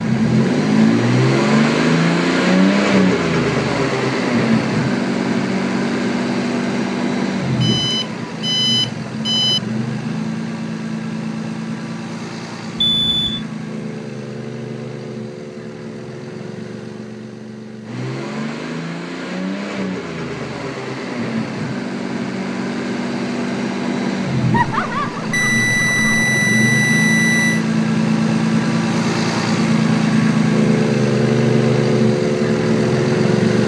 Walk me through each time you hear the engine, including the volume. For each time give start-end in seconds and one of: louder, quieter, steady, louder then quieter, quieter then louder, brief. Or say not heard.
0.0-33.6 quieter then louder.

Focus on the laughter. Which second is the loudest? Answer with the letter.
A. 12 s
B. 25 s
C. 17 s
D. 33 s
B.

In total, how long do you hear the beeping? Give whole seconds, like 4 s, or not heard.
5 s.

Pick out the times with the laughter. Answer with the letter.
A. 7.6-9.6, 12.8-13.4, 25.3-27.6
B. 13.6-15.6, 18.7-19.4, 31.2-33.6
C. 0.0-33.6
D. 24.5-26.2
D.